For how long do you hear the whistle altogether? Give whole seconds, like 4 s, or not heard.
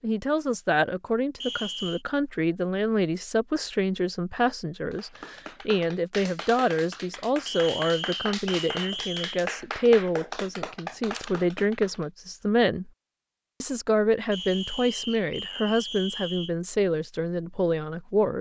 5 s.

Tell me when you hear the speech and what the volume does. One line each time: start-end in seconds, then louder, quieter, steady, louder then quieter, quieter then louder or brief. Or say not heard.
0.0-12.9 steady
13.6-18.3 steady.